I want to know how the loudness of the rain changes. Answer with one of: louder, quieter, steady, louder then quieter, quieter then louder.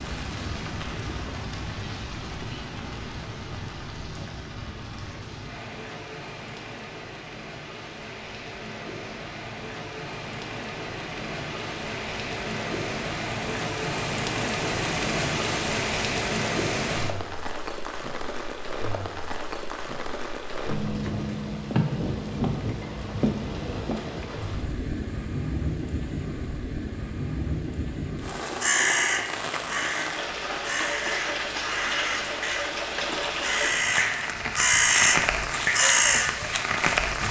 louder.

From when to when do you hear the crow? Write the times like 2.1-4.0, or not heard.
28.4-37.2.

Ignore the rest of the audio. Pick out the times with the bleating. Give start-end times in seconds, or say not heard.
not heard.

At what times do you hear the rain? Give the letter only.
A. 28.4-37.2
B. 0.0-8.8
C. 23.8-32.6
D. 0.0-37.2
D.